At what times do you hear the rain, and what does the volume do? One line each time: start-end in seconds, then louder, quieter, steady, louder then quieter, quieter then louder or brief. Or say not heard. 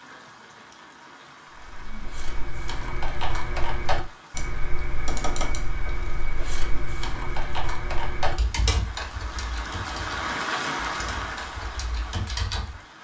0.0-12.9 louder.